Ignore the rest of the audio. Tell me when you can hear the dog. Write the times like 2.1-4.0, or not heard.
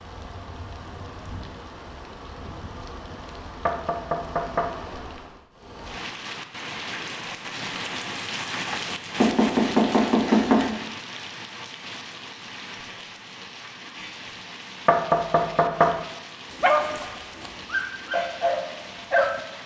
16.6-19.4.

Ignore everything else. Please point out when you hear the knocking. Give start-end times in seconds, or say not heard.
3.6-4.7, 9.2-10.8, 14.8-15.9.